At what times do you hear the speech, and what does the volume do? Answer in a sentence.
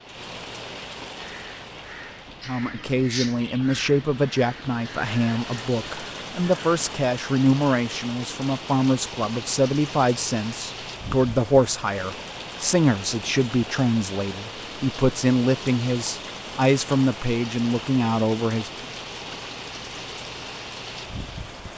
The speech can be heard from 2.5 to 18.9 s, at a steady volume.